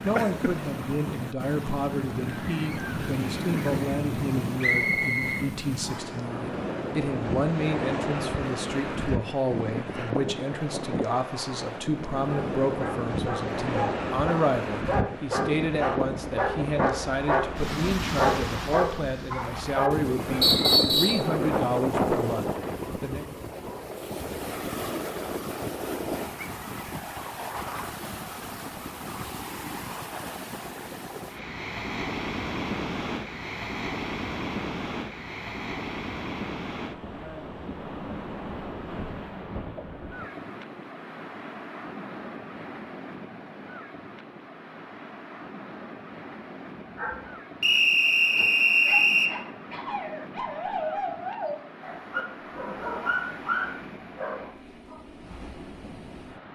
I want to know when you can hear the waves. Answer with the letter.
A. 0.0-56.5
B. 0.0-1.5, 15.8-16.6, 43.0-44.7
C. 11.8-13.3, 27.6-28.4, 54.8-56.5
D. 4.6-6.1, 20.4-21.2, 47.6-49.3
A.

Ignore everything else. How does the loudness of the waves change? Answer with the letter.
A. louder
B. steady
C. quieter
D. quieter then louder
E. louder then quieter
C.